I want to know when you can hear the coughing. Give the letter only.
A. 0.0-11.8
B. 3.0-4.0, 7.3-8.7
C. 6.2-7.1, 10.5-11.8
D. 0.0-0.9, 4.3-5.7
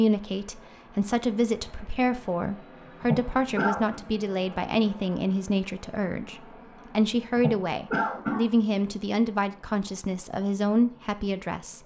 B.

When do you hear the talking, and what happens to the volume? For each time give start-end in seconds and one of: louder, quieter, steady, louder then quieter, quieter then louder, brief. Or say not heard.
0.0-11.8 steady.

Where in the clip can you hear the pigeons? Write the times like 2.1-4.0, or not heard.
not heard.